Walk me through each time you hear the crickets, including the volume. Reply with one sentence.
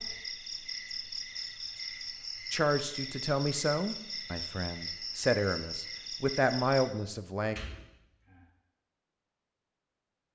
The crickets can be heard from 0.0 to 6.9 s, at a steady volume.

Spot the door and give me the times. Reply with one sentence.
You can hear the door from 7.3 to 8.4 s.